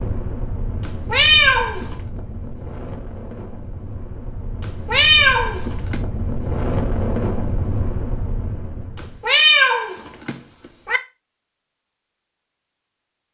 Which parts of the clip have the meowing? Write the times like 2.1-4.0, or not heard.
0.8-1.9, 4.7-6.0, 9.0-11.0.